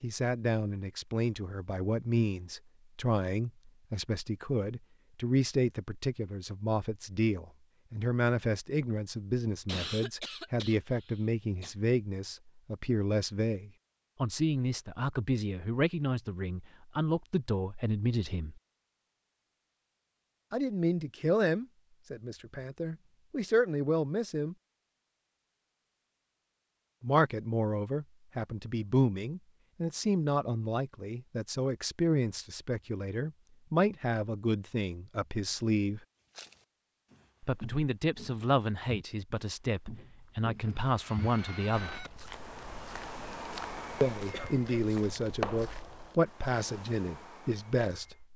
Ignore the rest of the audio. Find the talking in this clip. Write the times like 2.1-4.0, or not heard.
0.0-18.6, 20.5-24.6, 27.0-36.0, 37.4-42.0, 44.0-48.3.